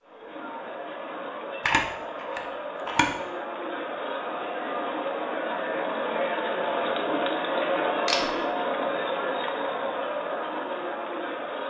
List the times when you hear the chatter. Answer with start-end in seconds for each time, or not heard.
0.0-11.6.